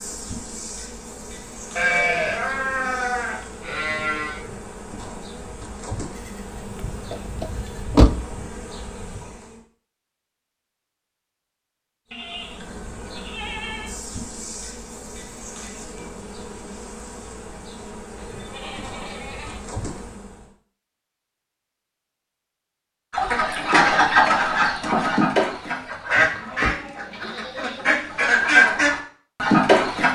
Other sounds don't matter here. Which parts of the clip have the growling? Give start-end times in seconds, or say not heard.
not heard.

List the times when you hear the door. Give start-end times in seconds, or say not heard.
7.1-8.2, 25.8-26.8.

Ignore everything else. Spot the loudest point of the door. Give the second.
8 s.